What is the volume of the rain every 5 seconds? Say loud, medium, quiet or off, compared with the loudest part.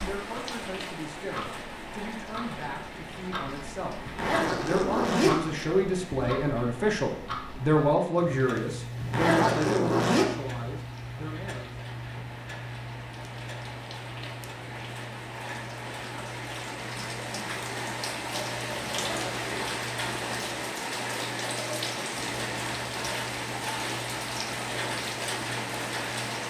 medium, quiet, medium, loud, loud, loud.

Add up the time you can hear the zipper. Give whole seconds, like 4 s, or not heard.
4 s.